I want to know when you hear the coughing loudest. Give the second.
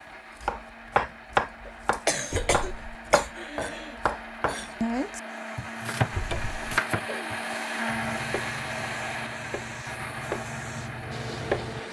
2 s.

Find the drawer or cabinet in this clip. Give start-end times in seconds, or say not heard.
2.3-3.0, 6.1-6.6.